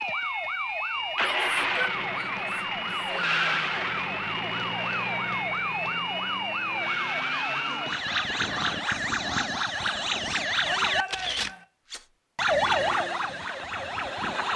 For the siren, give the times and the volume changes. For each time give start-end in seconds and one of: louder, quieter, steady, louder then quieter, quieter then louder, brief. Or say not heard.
0.0-14.5 steady.